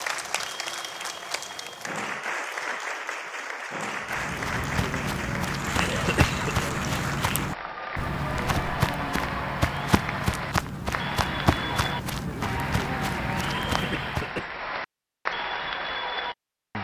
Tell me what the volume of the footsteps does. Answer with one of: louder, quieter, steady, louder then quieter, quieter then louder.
steady.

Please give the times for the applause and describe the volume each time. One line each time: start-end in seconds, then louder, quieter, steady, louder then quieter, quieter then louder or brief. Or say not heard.
0.0-16.8 steady.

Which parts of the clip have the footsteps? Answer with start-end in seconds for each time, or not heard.
4.0-14.3.